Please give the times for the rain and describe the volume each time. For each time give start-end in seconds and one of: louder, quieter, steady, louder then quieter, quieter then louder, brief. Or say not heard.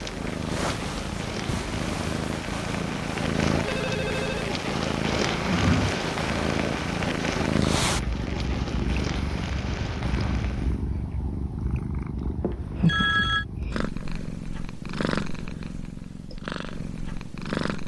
0.0-10.8 louder then quieter.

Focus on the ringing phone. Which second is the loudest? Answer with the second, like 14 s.
13 s.